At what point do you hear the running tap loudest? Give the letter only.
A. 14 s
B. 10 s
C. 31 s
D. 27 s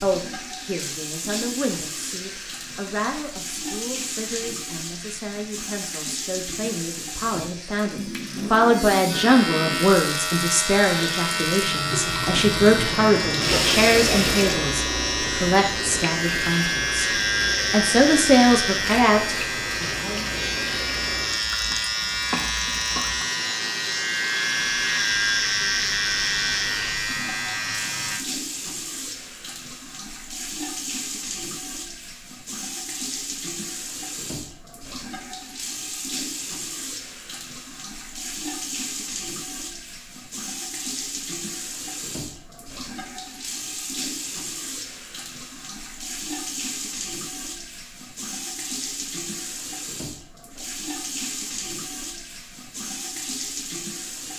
A.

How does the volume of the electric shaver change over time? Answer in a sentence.
The loudness of the electric shaver goes up.